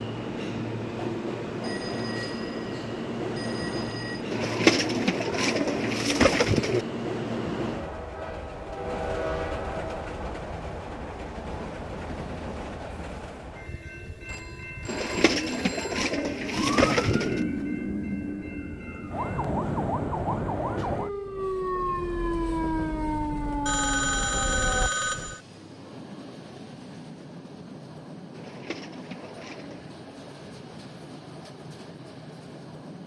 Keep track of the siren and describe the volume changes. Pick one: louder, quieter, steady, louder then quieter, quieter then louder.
steady.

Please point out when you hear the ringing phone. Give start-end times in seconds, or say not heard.
1.6-4.2, 14.2-16.0, 23.6-25.4.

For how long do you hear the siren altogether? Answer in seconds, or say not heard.
9 s.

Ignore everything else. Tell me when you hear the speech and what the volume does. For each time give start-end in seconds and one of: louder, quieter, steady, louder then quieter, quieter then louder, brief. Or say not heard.
not heard.